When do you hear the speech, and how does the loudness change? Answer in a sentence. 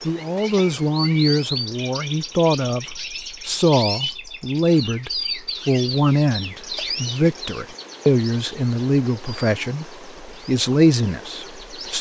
You can hear the speech from 0.1 to 11.9 s, at a steady volume.